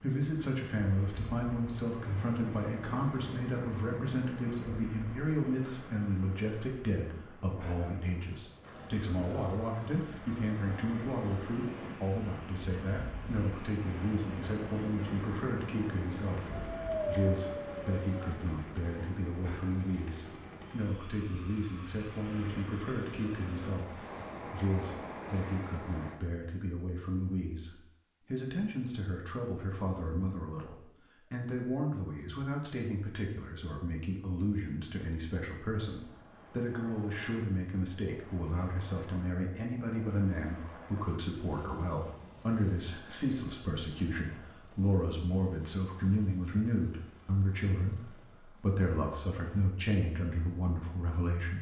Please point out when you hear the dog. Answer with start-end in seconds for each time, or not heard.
16.5-18.4.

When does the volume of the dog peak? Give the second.
17 s.